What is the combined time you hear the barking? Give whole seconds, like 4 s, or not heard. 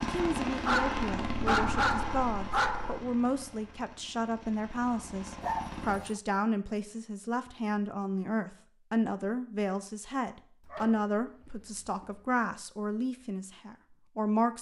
5 s.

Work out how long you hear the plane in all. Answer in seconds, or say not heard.
6 s.